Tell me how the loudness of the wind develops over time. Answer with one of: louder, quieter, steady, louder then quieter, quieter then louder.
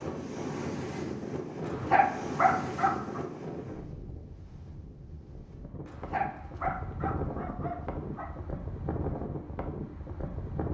quieter then louder.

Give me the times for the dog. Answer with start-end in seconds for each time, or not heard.
1.6-3.2, 5.8-8.3.